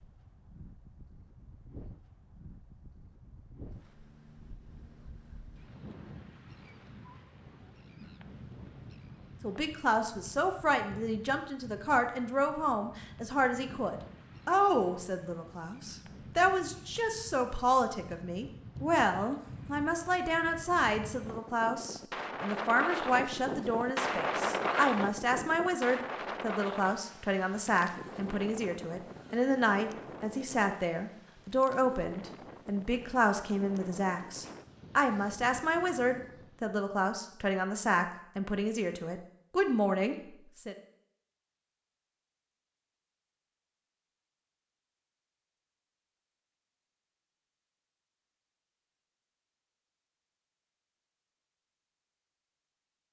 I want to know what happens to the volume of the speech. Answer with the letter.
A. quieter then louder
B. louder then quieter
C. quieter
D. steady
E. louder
D.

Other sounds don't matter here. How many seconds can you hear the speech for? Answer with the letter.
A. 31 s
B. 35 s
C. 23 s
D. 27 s
A.